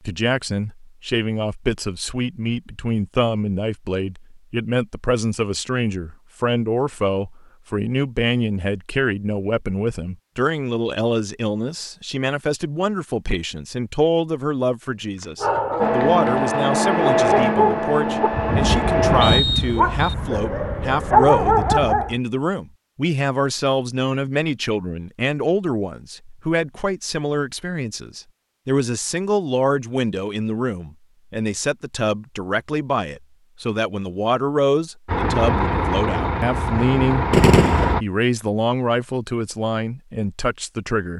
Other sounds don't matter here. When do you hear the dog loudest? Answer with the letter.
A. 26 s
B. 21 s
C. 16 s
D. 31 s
B.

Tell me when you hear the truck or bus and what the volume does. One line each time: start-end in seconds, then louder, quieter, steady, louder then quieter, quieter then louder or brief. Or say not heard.
15.8-21.8 quieter
35.0-38.0 brief.